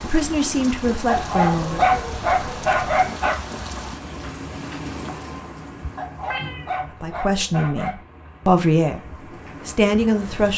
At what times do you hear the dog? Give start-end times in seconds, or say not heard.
1.1-3.4, 6.0-8.0.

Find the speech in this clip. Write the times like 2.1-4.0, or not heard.
0.0-1.9, 6.8-9.0, 9.7-10.5.